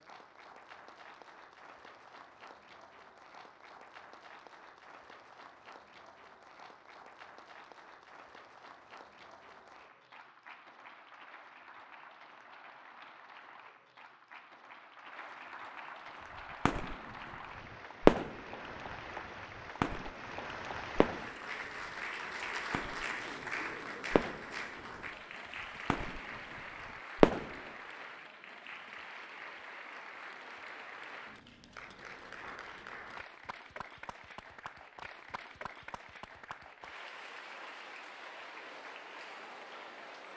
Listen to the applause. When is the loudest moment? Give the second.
23 s.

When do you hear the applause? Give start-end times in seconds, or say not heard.
0.0-40.3.